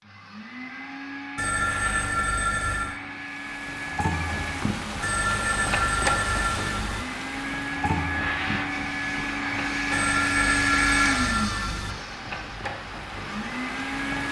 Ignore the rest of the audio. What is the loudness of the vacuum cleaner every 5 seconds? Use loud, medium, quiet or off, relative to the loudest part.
medium, loud, loud.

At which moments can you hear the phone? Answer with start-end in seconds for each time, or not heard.
1.4-3.0, 5.0-7.0, 9.9-11.9.